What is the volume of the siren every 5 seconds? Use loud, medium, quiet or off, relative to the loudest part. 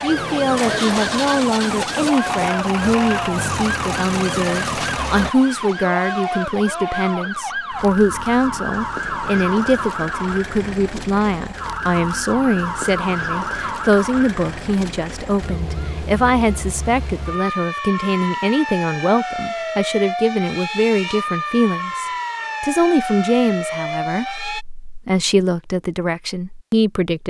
loud, loud, loud, loud, loud, off.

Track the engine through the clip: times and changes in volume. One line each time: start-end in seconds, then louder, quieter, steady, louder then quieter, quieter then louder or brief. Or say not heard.
0.0-5.3 steady.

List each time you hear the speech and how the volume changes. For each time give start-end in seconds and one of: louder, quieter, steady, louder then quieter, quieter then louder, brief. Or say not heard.
0.0-27.2 steady.